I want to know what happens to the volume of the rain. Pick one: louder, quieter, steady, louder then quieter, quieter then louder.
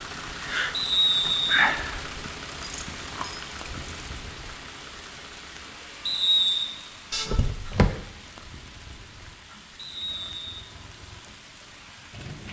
quieter.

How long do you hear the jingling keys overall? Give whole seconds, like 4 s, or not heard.
2 s.